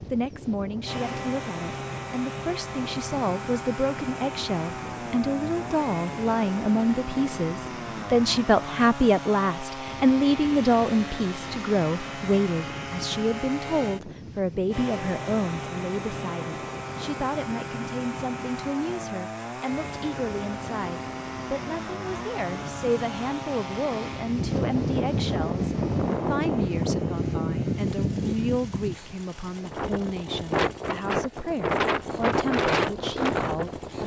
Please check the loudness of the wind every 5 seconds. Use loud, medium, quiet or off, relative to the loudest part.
quiet, quiet, quiet, quiet, medium, loud, loud.